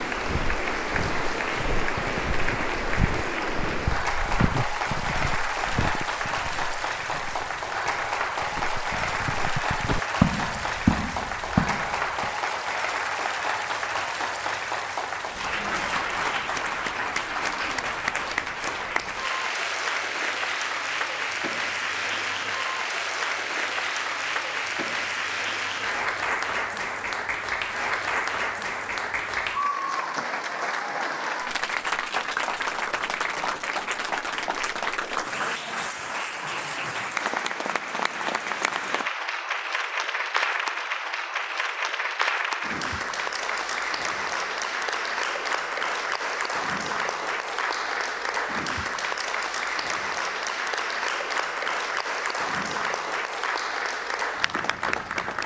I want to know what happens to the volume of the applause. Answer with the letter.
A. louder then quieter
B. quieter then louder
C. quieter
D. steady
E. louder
D.